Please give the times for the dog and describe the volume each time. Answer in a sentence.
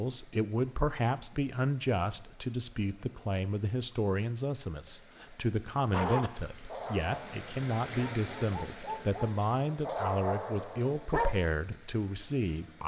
You can hear the dog from 5.9 to 11.4 s, getting quieter then louder.